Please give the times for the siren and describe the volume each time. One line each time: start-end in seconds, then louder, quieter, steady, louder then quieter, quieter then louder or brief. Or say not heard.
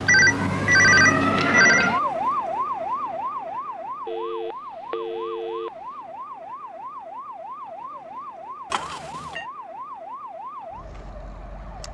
0.0-11.9 quieter.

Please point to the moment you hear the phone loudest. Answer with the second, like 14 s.
1 s.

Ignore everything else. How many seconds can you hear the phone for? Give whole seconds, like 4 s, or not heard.
4 s.